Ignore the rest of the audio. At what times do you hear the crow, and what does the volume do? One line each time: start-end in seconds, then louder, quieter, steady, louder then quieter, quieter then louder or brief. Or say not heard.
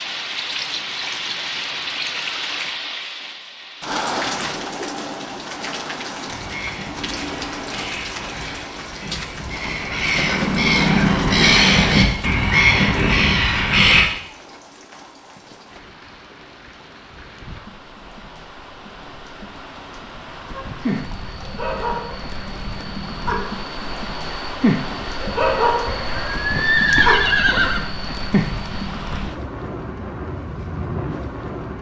6.2-14.1 louder.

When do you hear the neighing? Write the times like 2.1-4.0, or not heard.
25.9-27.9.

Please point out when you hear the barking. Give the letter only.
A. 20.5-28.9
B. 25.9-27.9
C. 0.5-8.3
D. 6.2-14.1
A.